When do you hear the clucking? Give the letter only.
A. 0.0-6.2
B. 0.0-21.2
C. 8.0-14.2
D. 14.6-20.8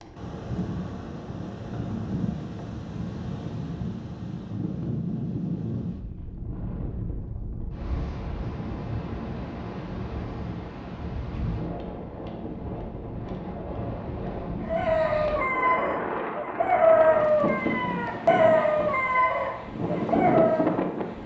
D.